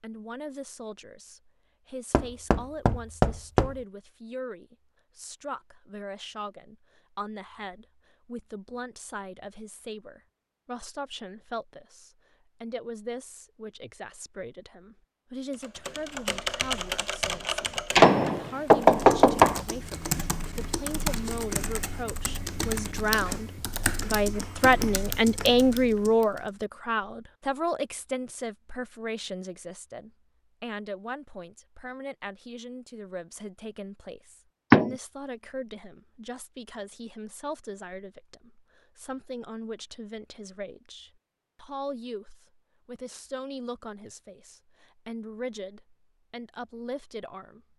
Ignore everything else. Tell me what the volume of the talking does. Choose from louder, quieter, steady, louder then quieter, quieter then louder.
louder then quieter.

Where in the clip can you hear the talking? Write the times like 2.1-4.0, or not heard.
0.0-47.7.